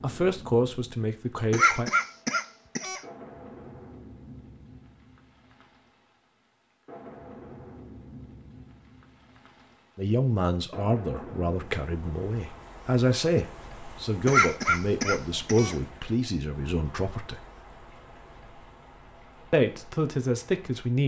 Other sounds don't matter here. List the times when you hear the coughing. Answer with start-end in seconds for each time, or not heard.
1.5-3.0, 14.2-15.8.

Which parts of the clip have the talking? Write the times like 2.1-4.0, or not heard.
0.0-1.9, 9.9-17.4, 19.5-21.0.